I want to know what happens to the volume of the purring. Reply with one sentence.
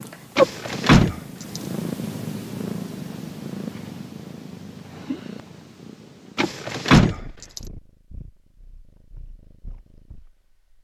The loudness of the purring goes down.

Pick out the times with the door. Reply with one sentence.
You can hear the door from 0.3 to 1.6 s and from 6.3 to 7.6 s.